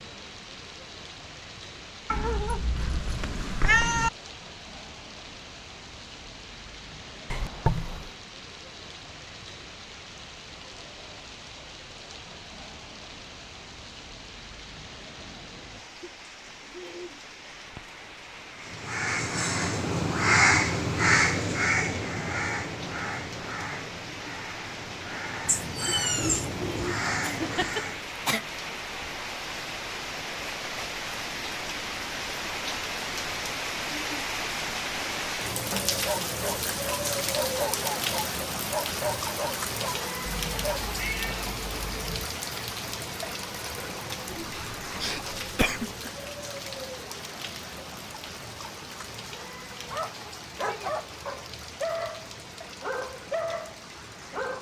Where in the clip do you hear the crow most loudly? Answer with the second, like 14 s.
20 s.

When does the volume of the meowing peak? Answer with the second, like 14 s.
4 s.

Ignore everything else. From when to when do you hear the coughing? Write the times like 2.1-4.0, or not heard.
7.3-8.1, 27.4-28.4, 44.2-46.1.